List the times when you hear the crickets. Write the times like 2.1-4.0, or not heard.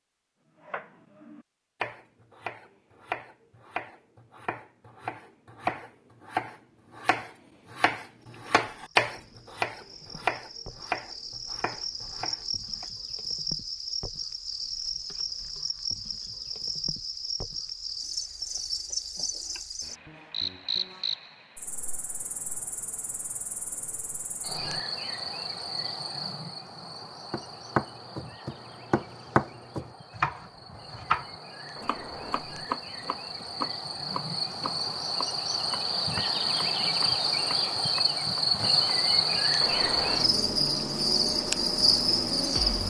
8.2-42.8.